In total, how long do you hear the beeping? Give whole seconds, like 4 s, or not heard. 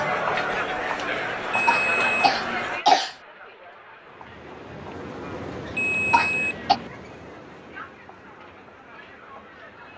2 s.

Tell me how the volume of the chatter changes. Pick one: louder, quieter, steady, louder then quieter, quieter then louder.
quieter.